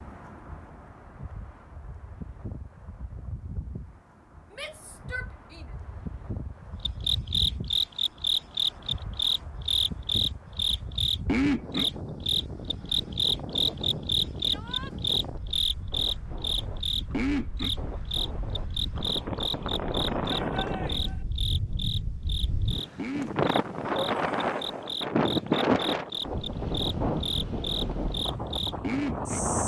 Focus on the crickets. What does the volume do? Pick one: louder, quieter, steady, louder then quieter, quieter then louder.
quieter.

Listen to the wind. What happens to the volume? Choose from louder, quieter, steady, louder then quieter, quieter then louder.
louder.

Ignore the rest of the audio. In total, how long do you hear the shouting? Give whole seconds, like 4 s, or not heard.
3 s.